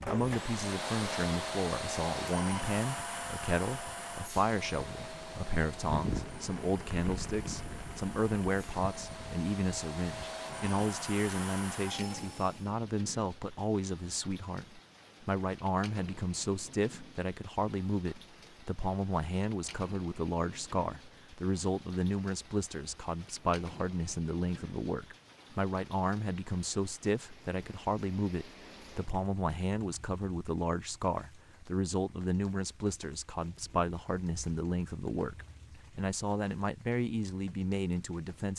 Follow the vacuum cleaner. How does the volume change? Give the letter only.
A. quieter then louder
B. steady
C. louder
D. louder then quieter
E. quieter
A.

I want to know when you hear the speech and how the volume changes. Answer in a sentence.
You can hear the speech from 0.1 to 38.5 s, at a steady volume.